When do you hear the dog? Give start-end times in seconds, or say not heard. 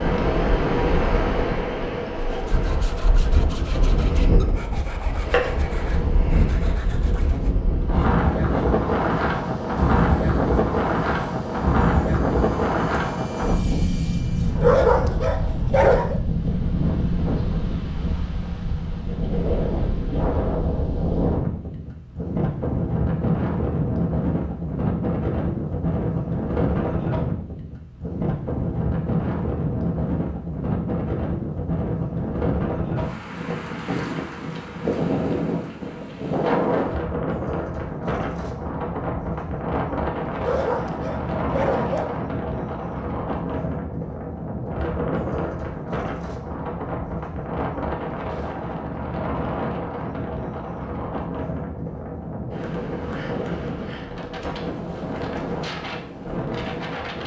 14.6-16.2, 40.4-42.1.